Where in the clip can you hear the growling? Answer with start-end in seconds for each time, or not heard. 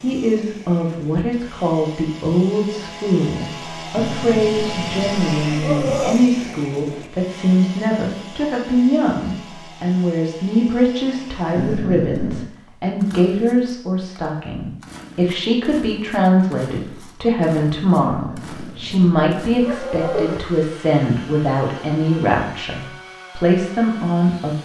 4.0-6.2, 11.6-12.5, 18.1-20.4.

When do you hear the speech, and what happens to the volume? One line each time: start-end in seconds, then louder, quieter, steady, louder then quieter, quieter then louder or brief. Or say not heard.
0.0-24.6 steady.